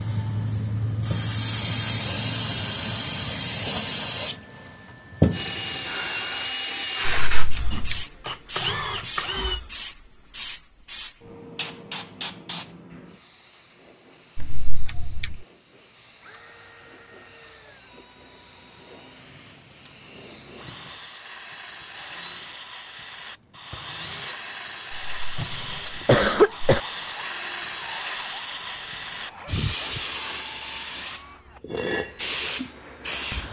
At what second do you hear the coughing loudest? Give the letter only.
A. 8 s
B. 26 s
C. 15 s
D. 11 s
B.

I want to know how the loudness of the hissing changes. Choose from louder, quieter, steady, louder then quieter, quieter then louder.
quieter then louder.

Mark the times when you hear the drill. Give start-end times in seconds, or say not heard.
5.3-9.6, 16.2-33.2.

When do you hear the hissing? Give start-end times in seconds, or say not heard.
0.0-33.4.